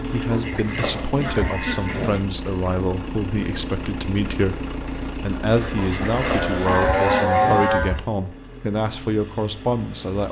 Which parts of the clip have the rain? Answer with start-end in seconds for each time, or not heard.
not heard.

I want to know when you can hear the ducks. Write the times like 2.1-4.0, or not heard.
0.3-2.2, 5.8-8.0.